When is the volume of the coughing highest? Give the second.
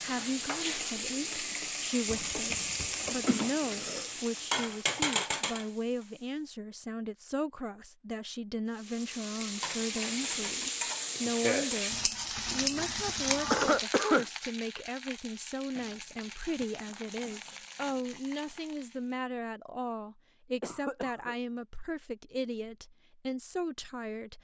14 s.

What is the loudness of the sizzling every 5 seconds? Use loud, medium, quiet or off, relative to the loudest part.
loud, loud, loud, quiet, off.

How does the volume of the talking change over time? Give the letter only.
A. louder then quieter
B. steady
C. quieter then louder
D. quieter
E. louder
B.